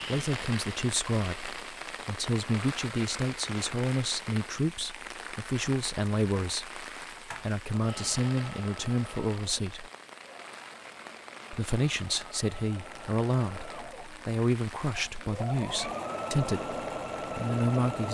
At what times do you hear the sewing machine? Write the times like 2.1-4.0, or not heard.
6.3-18.0.